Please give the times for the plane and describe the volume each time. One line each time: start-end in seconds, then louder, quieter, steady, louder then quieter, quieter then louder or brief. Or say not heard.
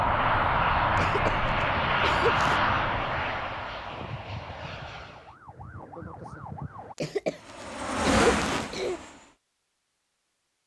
0.0-5.3 quieter
7.3-9.3 brief.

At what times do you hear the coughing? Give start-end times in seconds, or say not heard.
0.9-2.6, 7.0-9.0.